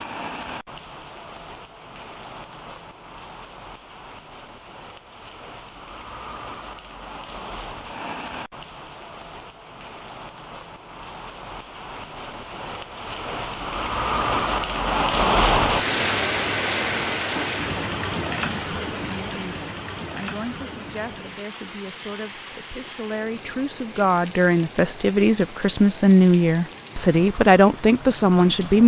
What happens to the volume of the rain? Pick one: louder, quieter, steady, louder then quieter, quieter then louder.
louder then quieter.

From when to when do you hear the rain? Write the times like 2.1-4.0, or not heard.
0.0-28.8.